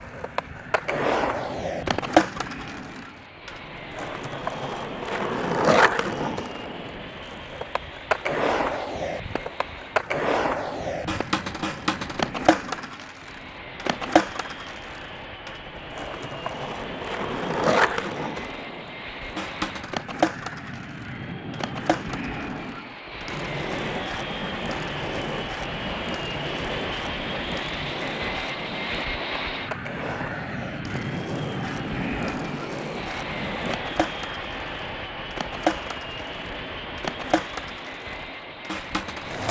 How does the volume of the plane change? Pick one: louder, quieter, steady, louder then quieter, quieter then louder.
louder.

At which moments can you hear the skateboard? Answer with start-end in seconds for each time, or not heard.
0.0-39.4.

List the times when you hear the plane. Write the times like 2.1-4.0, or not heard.
0.0-39.4.